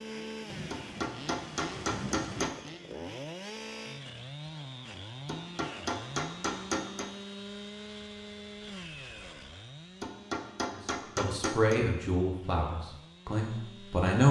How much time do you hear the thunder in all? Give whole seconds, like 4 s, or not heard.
2 s.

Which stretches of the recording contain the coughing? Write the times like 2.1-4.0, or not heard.
not heard.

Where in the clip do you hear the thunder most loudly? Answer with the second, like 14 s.
2 s.